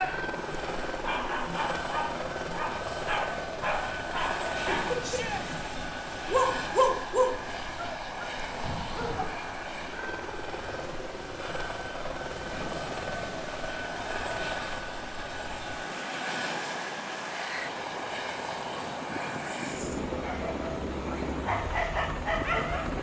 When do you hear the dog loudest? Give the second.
7 s.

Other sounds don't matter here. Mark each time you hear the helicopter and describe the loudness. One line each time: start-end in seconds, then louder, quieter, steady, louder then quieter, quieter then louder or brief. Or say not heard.
0.0-22.9 steady.